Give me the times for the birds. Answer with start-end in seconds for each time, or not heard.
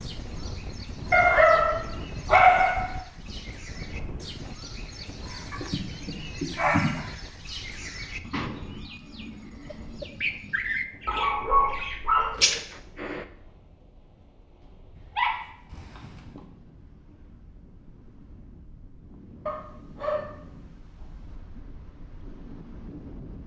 0.0-13.2.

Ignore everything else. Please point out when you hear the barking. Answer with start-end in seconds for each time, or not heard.
1.1-3.0, 5.5-7.0, 11.1-12.3, 14.9-16.4, 19.4-21.2.